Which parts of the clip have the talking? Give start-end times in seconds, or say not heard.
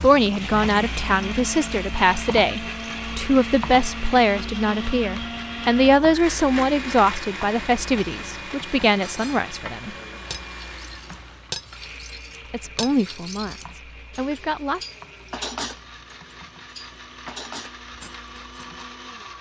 0.0-9.9, 12.5-14.8.